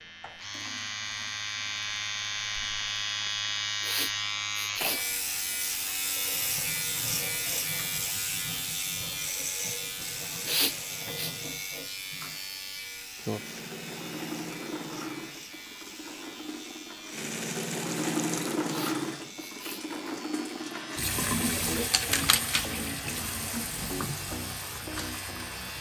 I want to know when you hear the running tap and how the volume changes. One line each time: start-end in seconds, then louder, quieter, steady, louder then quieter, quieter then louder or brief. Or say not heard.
0.0-25.7 louder.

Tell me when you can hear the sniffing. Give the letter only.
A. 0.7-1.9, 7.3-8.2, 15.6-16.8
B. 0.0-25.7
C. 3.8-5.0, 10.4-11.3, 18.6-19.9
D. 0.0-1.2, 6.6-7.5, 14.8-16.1
C.